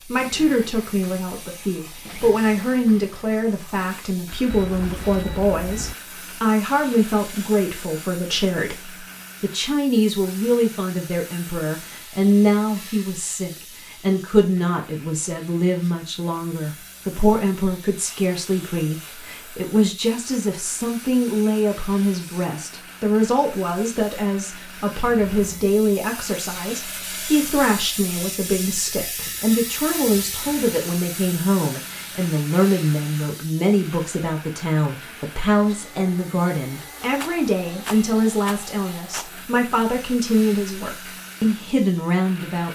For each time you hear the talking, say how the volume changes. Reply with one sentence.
The talking can be heard from 0.0 to 42.7 s, at a steady volume.